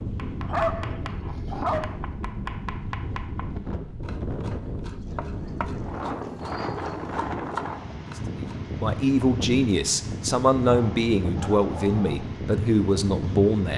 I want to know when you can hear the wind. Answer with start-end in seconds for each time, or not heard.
0.0-13.7.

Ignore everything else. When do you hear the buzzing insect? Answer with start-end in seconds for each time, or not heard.
not heard.